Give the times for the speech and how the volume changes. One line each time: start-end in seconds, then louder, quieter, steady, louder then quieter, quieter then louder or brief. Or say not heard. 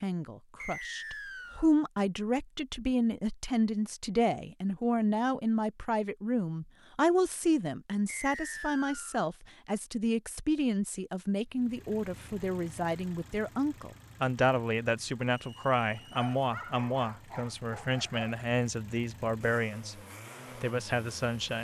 0.0-19.9 steady
20.6-21.5 brief.